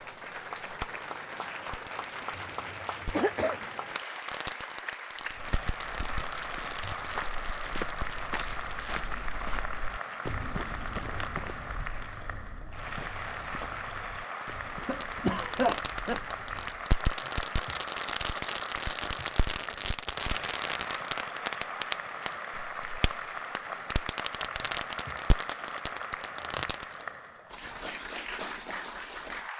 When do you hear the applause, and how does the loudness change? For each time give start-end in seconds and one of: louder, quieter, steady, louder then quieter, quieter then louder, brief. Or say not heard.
0.0-29.5 steady.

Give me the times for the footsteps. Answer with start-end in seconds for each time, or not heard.
5.2-16.9.